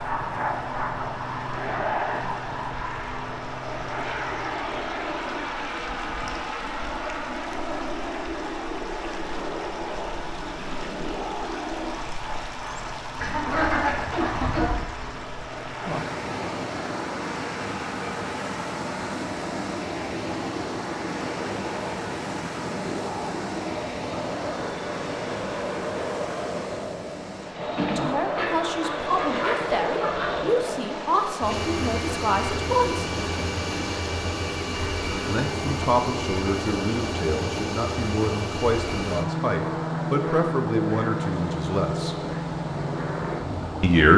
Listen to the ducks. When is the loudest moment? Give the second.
14 s.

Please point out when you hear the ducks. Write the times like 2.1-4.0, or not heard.
13.2-14.7, 28.4-30.3.